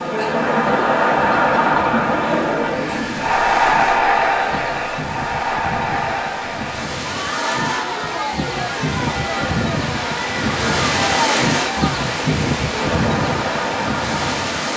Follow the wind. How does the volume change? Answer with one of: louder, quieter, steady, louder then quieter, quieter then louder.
louder.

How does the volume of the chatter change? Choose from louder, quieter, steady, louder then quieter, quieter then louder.
quieter.